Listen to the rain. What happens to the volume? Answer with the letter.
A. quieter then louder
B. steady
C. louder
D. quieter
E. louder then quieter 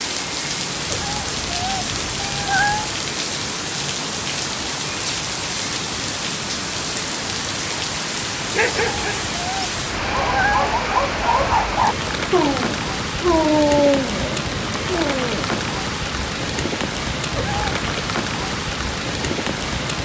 B.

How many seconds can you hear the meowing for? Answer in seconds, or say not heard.
5 s.